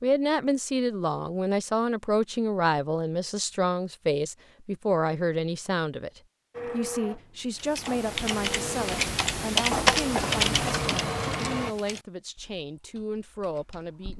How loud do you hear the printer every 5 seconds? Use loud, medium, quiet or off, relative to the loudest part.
off, medium, loud.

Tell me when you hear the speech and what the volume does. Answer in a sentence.
The speech can be heard from 0.0 to 14.1 s, getting quieter.